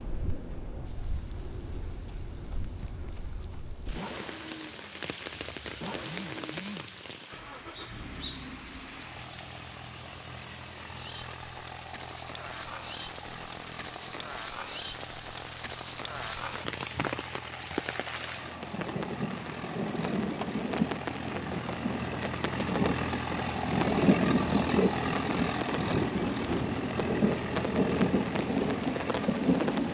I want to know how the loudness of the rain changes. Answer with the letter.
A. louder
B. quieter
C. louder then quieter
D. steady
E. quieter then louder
A.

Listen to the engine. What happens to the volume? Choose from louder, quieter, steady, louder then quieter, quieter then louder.
louder.